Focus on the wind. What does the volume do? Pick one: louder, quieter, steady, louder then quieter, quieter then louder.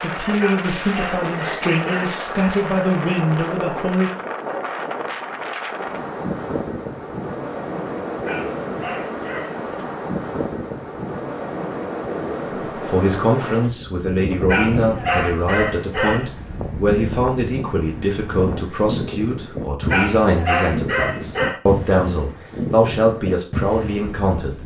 steady.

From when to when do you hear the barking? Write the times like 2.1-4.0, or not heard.
0.3-2.1, 8.2-9.6, 14.4-16.3, 19.9-21.6.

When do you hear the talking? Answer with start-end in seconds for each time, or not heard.
0.0-4.1, 12.8-24.6.